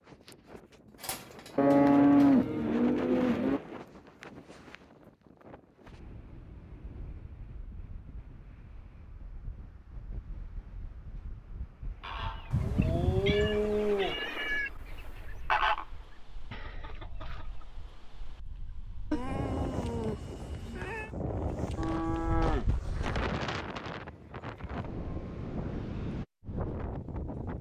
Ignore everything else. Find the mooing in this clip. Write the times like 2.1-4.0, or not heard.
1.6-3.6, 12.5-14.2, 21.8-23.2.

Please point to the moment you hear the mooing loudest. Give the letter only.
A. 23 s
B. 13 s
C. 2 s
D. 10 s
C.